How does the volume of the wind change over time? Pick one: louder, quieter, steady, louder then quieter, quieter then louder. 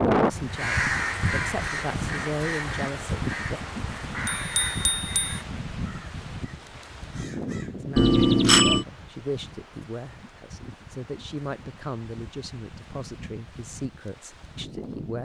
quieter.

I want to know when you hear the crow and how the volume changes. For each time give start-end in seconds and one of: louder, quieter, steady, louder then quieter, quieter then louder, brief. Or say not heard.
0.5-7.8 quieter.